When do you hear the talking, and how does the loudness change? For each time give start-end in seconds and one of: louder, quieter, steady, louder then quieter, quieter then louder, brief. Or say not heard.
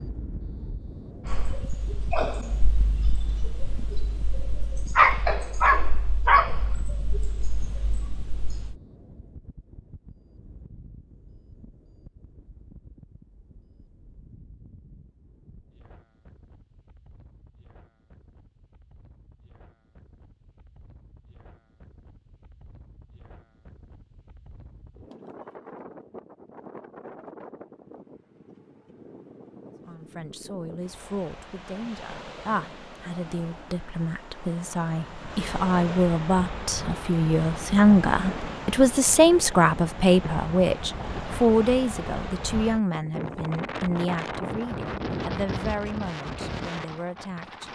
29.9-47.7 louder then quieter.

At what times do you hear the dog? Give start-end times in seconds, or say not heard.
1.2-8.8.